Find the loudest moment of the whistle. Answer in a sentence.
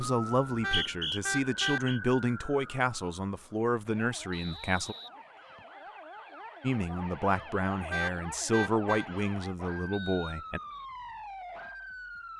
The loudest moment of the whistle is at 1 second.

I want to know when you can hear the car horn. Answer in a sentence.
You can hear the car horn from 0.6 to 1.8 s and from 7.9 to 9.1 s.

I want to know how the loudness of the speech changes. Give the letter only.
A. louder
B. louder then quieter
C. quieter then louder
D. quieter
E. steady
E.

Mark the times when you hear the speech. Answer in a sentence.
You can hear the speech from 0.0 to 5.0 s and from 6.6 to 10.6 s.